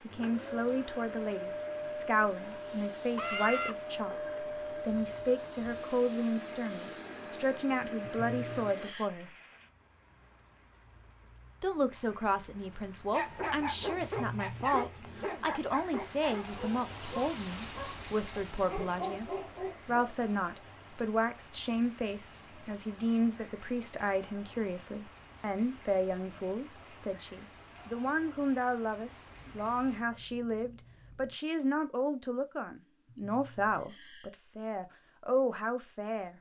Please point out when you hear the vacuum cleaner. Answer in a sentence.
The vacuum cleaner can be heard from 0.0 to 8.9 s.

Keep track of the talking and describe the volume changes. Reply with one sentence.
The loudness of the talking stays about the same.